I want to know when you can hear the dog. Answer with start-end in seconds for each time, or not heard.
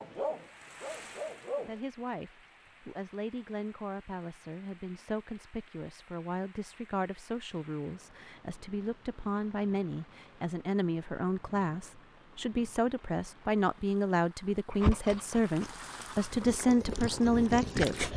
0.0-1.8, 14.7-18.1.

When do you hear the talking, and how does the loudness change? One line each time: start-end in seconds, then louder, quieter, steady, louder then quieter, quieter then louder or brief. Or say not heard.
1.6-18.1 louder.